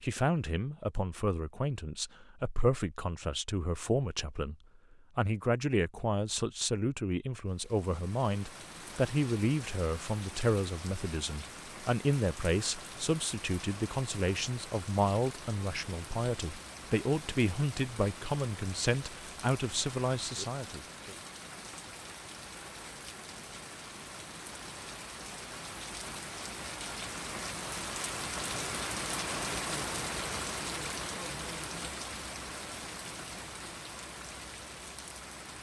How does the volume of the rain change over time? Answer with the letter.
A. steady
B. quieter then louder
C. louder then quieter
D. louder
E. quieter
D.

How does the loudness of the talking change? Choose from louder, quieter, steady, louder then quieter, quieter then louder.
steady.